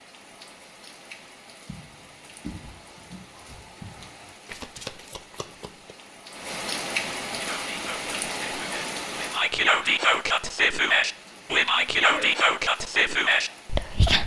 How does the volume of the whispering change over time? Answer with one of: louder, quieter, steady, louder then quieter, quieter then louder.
louder.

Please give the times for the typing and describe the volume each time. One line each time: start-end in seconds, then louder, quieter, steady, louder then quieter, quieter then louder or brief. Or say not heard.
not heard.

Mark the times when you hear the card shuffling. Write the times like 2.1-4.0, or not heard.
4.5-6.0.